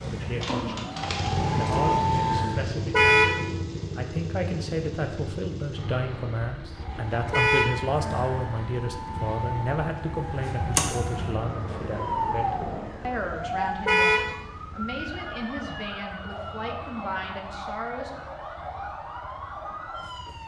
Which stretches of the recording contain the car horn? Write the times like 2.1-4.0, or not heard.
2.9-3.4, 7.3-7.8, 13.8-14.3.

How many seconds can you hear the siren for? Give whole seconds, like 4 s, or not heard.
16 s.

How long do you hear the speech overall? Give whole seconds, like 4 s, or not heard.
18 s.